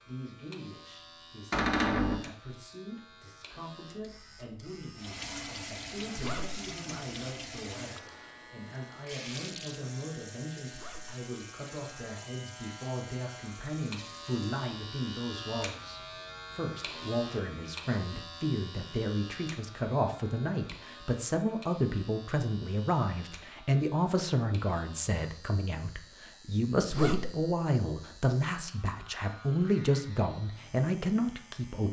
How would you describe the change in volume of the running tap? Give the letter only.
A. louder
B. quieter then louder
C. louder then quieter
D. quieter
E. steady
D.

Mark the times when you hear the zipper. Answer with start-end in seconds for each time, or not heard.
6.2-6.6, 10.7-11.2, 26.9-27.4.